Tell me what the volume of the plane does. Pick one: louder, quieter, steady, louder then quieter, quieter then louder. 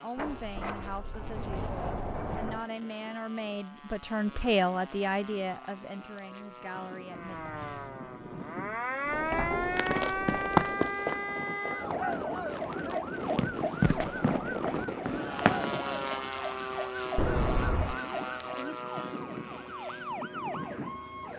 louder.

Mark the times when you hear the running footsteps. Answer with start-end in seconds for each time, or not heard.
9.8-15.8.